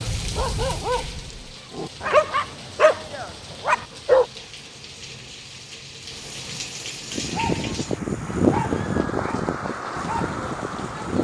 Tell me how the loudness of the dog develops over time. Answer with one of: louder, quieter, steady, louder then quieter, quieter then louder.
louder then quieter.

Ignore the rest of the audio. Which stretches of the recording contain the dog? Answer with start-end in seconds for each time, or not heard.
0.0-4.2, 7.1-11.1.